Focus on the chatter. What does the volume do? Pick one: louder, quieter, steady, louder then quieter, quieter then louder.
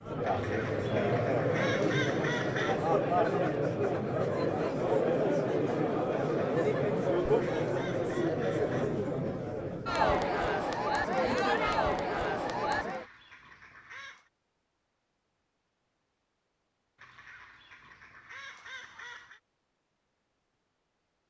steady.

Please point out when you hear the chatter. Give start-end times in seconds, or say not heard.
0.0-13.1.